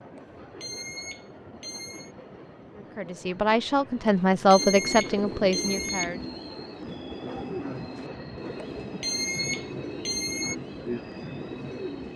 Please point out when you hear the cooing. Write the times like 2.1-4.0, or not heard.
4.5-12.1.